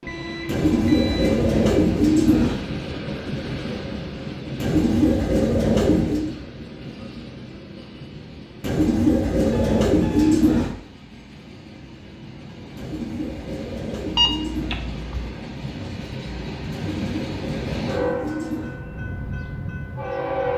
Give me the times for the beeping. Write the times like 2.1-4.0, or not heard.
0.1-1.2, 9.5-10.5, 14.2-15.3.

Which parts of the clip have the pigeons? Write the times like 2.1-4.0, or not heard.
0.5-2.6, 4.6-6.3, 8.6-10.8, 12.8-14.8, 16.7-18.8.